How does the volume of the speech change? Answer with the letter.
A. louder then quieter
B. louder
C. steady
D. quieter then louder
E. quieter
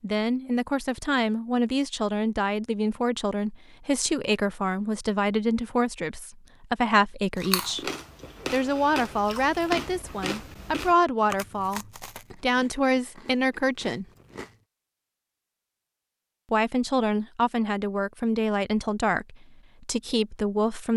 C.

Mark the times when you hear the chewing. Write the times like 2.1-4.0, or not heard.
7.3-14.6.